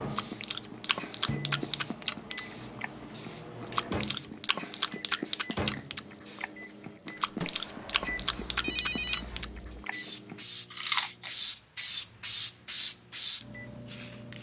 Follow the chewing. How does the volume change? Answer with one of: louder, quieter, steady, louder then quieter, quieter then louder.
steady.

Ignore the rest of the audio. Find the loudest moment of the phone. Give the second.
9 s.